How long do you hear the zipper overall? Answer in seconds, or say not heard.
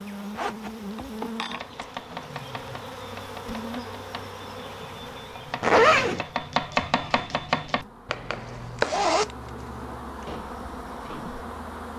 4 s.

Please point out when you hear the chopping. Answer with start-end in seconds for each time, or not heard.
1.5-11.4.